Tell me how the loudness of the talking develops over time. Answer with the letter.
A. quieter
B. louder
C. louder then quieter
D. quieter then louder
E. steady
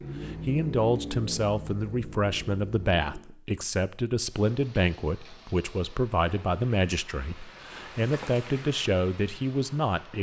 E.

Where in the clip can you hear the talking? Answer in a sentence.
You can hear the talking from 0.2 to 10.1 s.